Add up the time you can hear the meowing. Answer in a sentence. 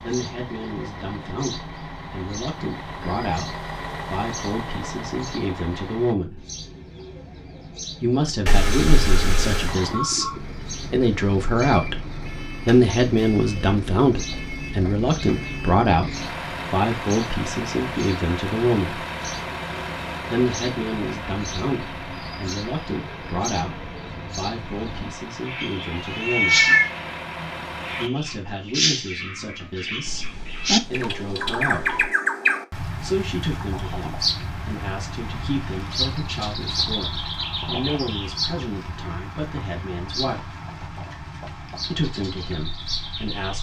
You can hear the meowing for 4 seconds altogether.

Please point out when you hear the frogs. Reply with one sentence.
You can't hear the frogs here.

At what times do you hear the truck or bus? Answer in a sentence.
The truck or bus can be heard from 0.0 to 6.2 s and from 9.7 to 28.1 s.